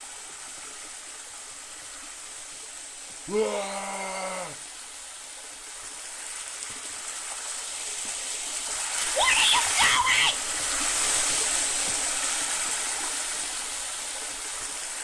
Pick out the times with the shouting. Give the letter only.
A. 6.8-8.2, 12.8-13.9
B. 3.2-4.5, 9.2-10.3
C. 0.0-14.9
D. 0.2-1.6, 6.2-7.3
B.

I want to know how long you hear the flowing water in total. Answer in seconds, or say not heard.
15 s.